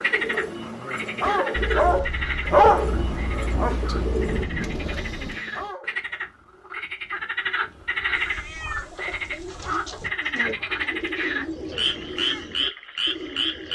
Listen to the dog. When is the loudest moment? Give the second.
3 s.